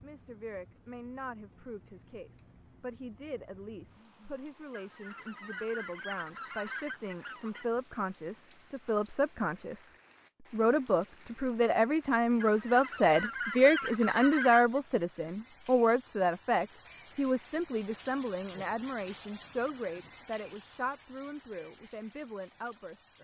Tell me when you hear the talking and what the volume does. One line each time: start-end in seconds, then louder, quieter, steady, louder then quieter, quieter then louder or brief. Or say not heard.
0.0-9.9 louder
10.5-23.1 quieter.